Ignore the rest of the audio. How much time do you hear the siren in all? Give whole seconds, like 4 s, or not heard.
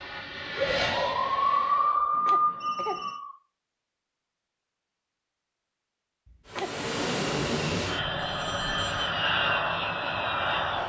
3 s.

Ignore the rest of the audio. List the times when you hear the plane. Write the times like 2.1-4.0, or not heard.
0.0-1.9, 6.5-10.8.